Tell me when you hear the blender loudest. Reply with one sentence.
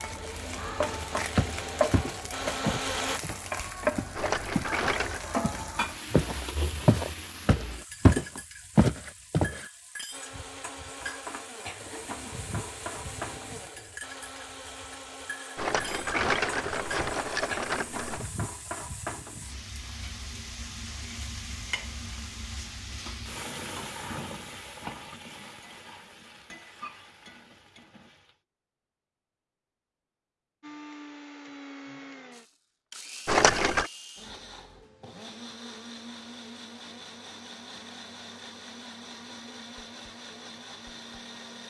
The loudest moment of the blender is at 3 seconds.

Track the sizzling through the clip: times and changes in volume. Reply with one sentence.
The sizzling can be heard from 0.0 to 28.4 s, getting quieter.